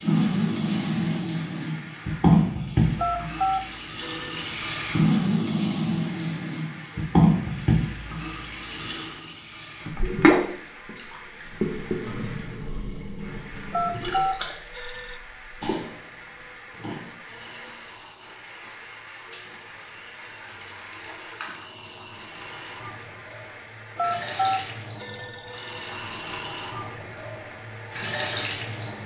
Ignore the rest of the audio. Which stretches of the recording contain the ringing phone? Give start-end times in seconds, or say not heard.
3.0-4.5, 13.7-15.2, 23.9-25.9.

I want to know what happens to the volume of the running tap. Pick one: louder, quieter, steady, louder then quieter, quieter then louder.
quieter then louder.